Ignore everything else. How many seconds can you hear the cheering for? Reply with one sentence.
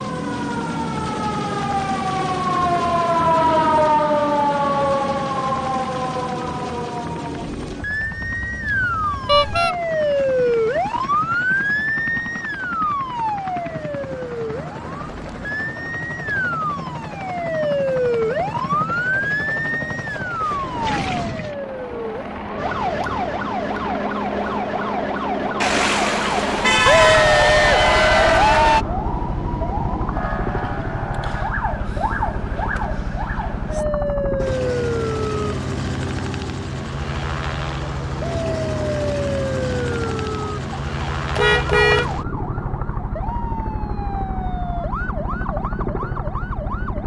You can hear the cheering for 2 seconds altogether.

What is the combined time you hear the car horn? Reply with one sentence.
You can hear the car horn for 3 seconds altogether.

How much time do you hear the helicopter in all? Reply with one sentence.
The helicopter can be heard for 47 seconds in total.